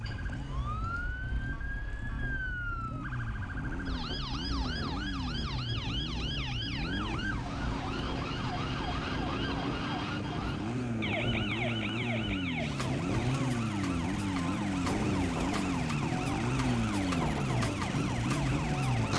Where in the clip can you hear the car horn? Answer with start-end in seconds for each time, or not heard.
not heard.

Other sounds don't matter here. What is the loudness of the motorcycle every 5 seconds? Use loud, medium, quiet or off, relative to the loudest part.
medium, medium, loud, loud.